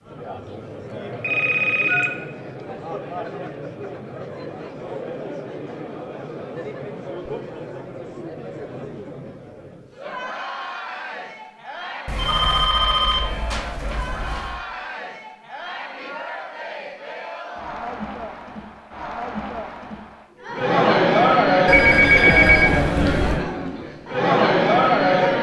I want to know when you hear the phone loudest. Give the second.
22 s.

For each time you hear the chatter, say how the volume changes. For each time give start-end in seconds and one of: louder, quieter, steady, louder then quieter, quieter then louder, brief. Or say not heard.
0.0-25.3 louder.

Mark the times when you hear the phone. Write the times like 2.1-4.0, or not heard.
0.9-2.1, 12.1-14.6, 21.6-23.4.